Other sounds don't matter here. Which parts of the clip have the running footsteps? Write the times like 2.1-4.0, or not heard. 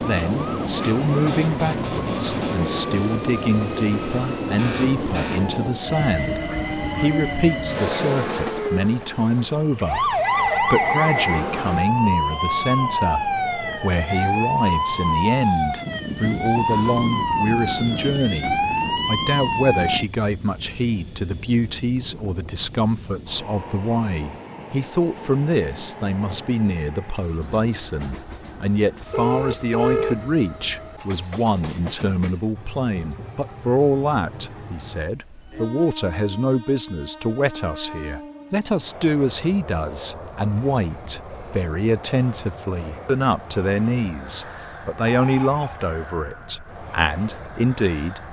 not heard.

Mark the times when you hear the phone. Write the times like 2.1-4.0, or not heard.
9.8-11.4, 29.1-30.1, 45.0-45.8.